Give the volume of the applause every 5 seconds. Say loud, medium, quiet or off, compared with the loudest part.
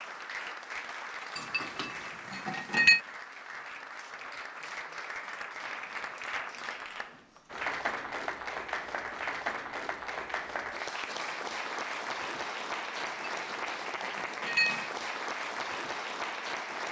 medium, loud, loud, loud.